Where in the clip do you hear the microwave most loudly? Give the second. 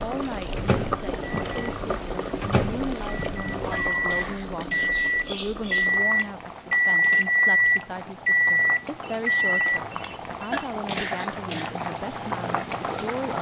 7 s.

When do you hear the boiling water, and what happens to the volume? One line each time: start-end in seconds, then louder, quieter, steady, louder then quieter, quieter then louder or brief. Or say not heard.
0.0-13.3 quieter then louder.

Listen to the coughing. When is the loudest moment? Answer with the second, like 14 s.
11 s.